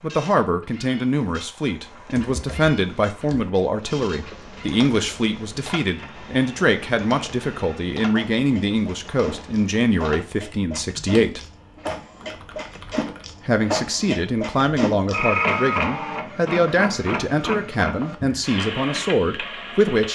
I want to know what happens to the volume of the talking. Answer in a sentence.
The volume of the talking stays about the same.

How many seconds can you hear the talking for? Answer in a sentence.
The talking can be heard for 18 seconds in total.